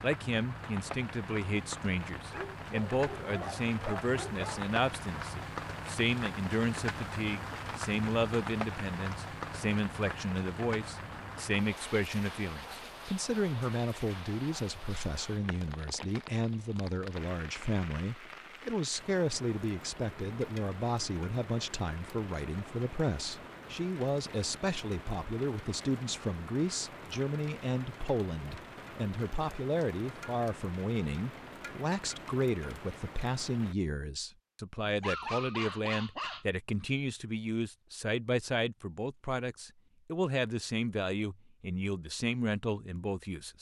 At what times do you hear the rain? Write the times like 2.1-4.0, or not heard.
0.0-33.8.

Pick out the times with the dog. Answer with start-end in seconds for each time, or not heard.
2.3-4.7, 34.9-36.5.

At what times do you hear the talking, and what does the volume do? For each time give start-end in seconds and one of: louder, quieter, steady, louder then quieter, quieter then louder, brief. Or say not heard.
0.0-43.5 steady.